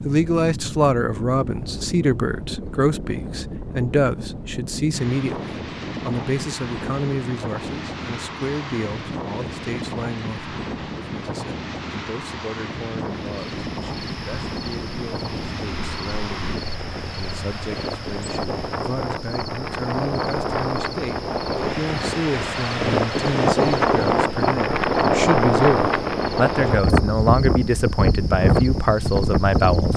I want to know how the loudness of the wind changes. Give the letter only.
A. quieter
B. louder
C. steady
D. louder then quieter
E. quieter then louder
B.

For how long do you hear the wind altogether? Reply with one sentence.
You can hear the wind for 30 seconds altogether.